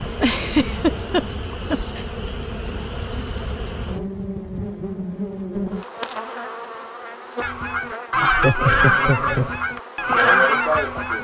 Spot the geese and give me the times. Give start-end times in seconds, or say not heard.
7.4-11.1.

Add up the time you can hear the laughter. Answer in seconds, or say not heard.
3 s.